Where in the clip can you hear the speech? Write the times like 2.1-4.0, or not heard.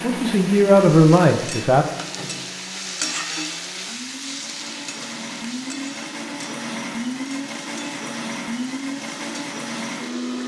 0.0-1.9.